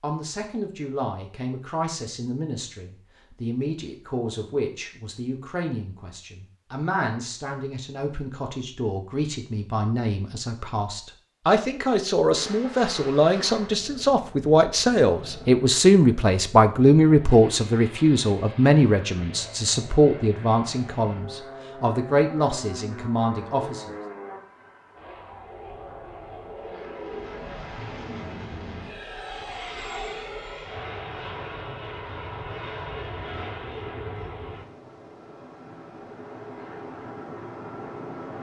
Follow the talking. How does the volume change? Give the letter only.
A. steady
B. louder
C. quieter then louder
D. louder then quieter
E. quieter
D.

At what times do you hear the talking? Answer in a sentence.
The talking can be heard from 0.0 to 23.9 s.